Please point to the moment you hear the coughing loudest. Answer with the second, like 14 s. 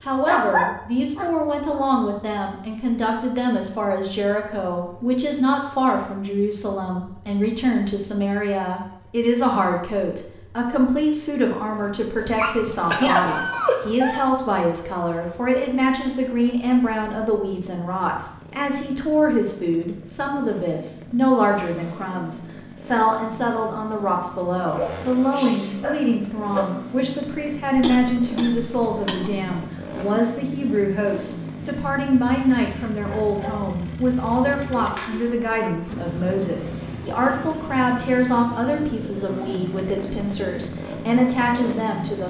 13 s.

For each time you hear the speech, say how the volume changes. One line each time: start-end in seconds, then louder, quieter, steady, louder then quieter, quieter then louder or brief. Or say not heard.
0.0-42.2 steady.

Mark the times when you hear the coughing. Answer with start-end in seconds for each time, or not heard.
12.9-13.4, 27.8-29.5.